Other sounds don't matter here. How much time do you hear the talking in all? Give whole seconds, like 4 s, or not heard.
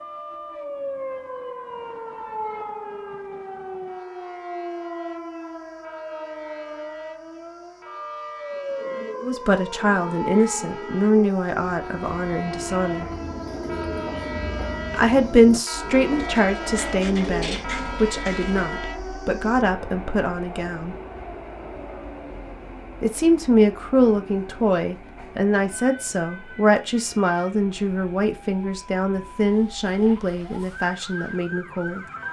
19 s.